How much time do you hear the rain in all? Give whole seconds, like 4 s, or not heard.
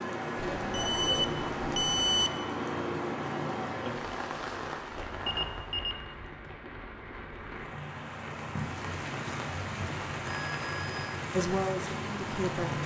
13 s.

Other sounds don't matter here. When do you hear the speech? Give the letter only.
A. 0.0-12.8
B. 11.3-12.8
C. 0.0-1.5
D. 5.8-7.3
B.